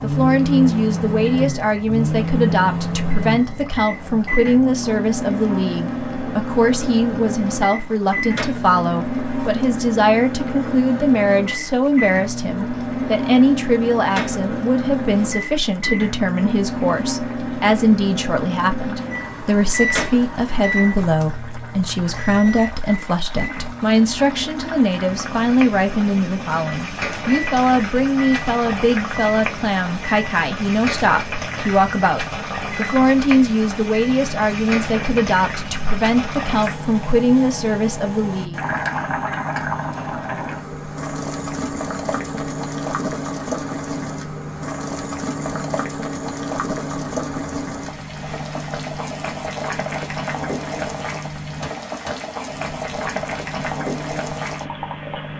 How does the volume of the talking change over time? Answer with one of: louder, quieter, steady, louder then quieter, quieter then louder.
steady.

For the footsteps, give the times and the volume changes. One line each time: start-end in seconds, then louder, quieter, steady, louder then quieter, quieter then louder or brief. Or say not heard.
not heard.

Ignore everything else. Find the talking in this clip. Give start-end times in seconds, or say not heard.
0.0-38.6.